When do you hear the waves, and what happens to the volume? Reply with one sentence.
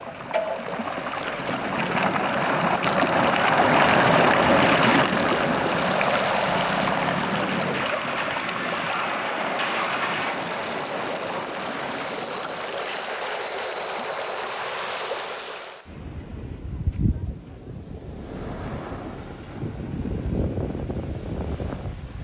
The waves can be heard from 0.0 to 22.1 s, getting quieter.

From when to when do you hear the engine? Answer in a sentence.
The engine can be heard from 0.0 to 10.4 s.